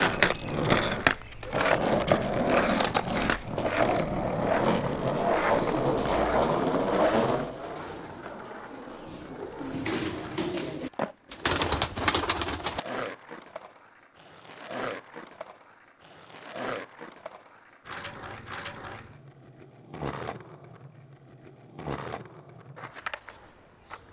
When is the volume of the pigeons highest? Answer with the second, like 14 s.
12 s.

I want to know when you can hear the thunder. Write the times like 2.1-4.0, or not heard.
not heard.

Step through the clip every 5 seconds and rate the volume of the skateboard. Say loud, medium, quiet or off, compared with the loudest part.
loud, loud, quiet, quiet, quiet.